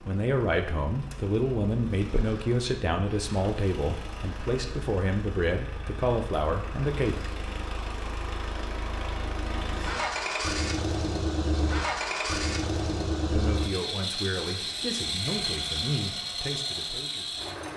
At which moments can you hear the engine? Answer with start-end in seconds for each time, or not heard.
0.0-17.7.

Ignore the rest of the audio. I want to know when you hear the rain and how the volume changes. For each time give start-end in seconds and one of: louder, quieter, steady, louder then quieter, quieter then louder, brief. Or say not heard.
not heard.